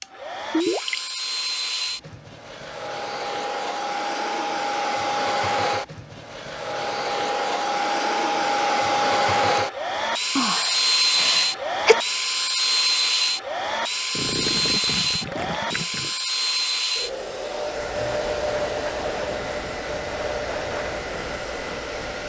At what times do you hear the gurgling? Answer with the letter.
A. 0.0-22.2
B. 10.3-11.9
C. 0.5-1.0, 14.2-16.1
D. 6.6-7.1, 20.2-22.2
C.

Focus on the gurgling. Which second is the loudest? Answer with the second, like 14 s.
1 s.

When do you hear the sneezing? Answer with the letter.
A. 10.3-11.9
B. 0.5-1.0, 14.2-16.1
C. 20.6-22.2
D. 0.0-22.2
A.